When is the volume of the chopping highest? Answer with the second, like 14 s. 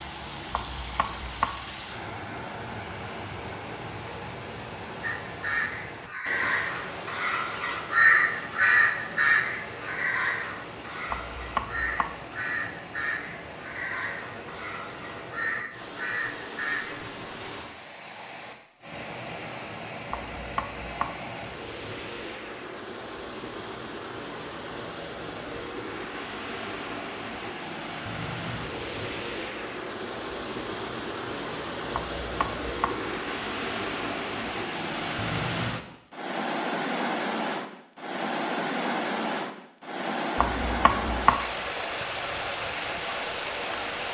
41 s.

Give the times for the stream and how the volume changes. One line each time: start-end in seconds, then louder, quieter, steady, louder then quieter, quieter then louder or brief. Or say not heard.
0.0-44.0 louder.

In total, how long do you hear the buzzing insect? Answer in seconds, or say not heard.
not heard.